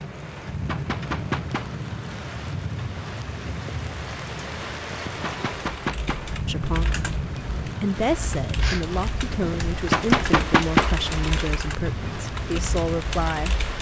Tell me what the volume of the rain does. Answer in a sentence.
The loudness of the rain stays about the same.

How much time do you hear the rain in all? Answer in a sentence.
The rain can be heard for 14 seconds in total.